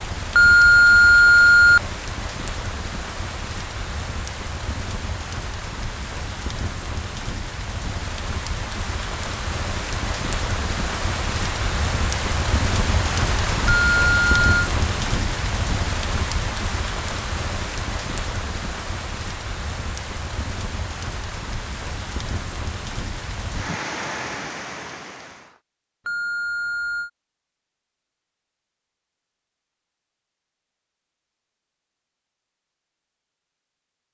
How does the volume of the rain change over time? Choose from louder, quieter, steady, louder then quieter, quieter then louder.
louder then quieter.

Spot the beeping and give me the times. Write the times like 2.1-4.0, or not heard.
0.3-1.8, 13.7-14.7, 26.1-27.1.